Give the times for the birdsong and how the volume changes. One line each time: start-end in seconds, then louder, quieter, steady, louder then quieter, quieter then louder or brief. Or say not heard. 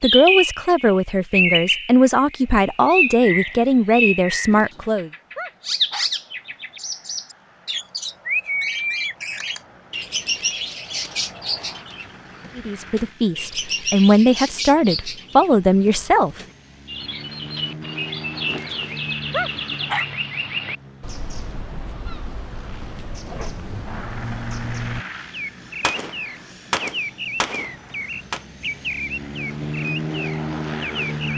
0.0-31.3 quieter.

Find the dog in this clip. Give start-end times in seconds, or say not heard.
4.5-6.1, 18.4-20.1.